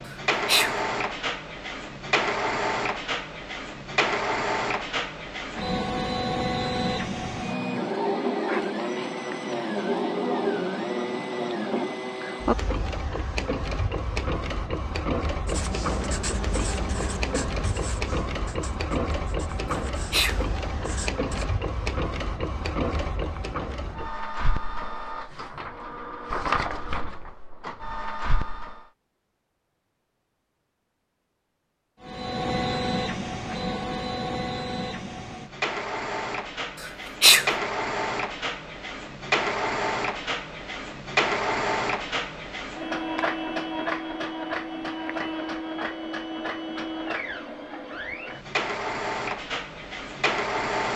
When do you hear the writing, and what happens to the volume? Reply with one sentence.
The writing can be heard from 15.4 to 21.4 s, getting quieter then louder.